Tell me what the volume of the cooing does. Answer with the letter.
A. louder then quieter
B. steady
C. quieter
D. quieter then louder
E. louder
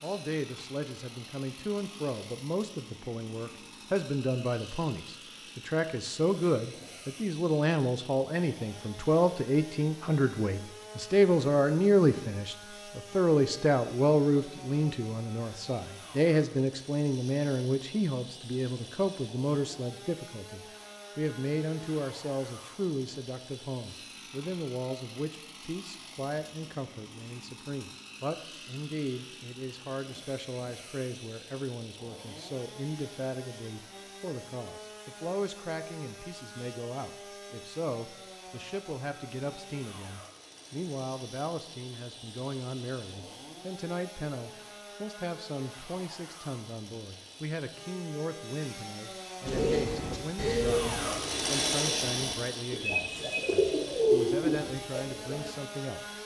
D.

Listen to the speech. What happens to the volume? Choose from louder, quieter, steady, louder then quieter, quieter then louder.
quieter.